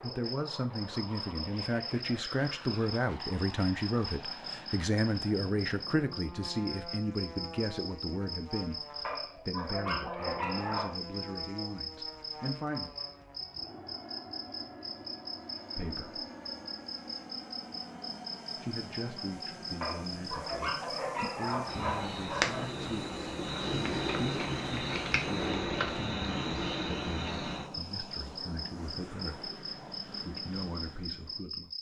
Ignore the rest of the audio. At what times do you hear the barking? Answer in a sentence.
You can hear the barking from 9.0 to 11.0 s and from 19.8 to 22.7 s.